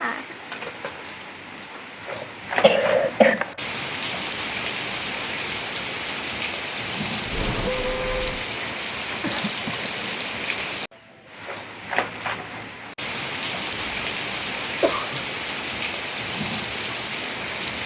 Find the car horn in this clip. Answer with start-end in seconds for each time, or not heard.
7.2-8.4.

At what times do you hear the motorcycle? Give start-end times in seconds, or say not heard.
not heard.